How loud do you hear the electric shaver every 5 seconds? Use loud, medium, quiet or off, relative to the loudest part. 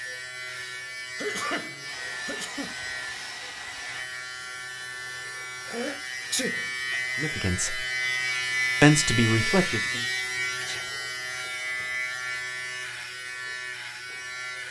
medium, loud, loud.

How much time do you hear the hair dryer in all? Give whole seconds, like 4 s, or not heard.
2 s.